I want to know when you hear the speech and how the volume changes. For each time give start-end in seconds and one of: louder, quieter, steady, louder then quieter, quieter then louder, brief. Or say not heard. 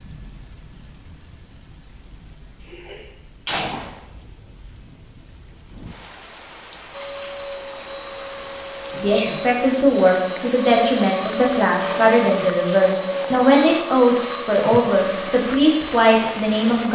8.9-16.9 steady.